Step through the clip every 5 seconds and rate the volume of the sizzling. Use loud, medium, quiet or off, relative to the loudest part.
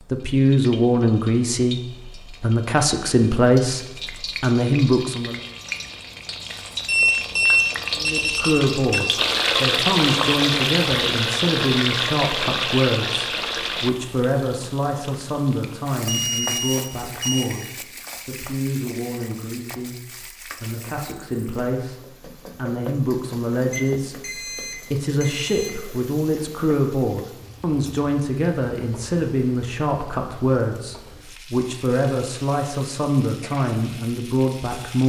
quiet, loud, loud, quiet, quiet, quiet, quiet.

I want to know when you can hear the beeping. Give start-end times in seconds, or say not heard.
6.8-9.0, 16.1-17.5, 23.7-25.7.